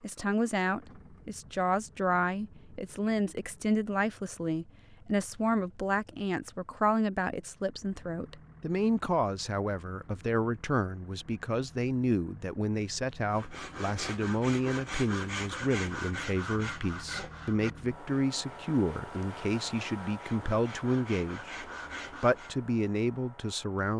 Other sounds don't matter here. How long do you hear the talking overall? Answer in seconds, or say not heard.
24 s.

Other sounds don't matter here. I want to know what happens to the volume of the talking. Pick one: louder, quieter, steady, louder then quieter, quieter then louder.
steady.